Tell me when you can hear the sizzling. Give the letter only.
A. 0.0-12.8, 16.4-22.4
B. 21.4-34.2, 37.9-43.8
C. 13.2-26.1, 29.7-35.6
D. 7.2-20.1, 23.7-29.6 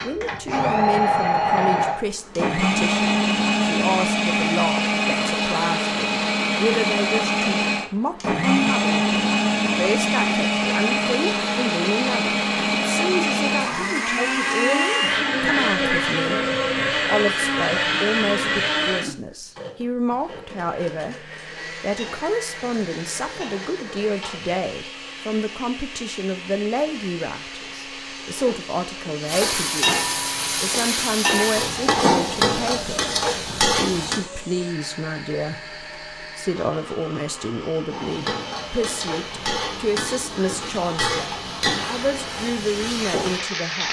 B.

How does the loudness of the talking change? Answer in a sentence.
The volume of the talking stays about the same.